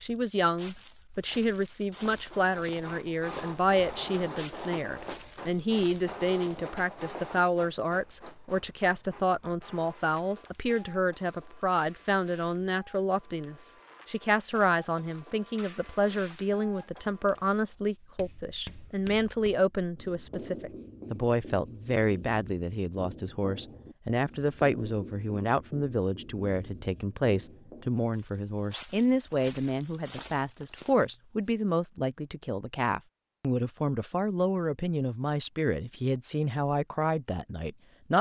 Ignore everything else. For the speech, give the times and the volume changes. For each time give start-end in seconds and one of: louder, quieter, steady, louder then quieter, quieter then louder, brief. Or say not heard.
0.0-38.1 steady.